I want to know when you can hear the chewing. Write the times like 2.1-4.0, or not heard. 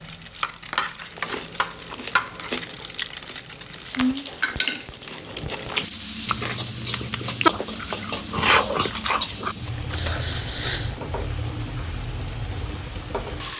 1.1-11.0.